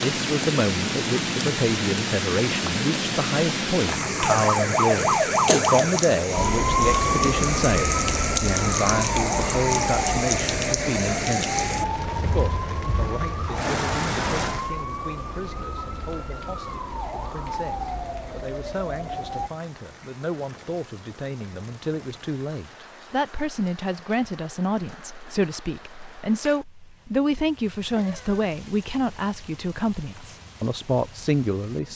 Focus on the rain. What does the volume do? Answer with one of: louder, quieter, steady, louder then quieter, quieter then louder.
quieter.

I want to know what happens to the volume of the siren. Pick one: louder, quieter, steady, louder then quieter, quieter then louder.
quieter.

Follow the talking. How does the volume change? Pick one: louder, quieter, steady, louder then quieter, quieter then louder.
quieter then louder.